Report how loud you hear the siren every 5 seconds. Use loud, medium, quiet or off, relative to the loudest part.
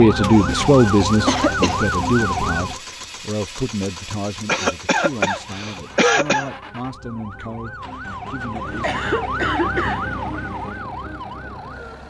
loud, medium, medium.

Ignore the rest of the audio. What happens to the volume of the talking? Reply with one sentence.
The volume of the talking goes down.